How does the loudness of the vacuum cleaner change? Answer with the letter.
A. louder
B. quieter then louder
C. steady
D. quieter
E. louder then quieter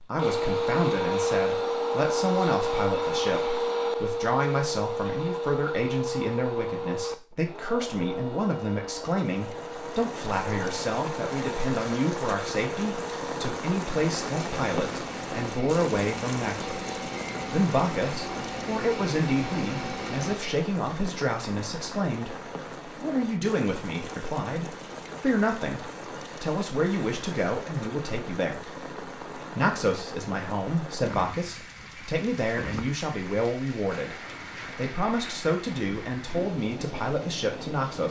D.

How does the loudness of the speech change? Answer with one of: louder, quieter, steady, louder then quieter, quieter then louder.
steady.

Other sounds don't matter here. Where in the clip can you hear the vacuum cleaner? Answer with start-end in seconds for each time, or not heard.
0.0-20.4.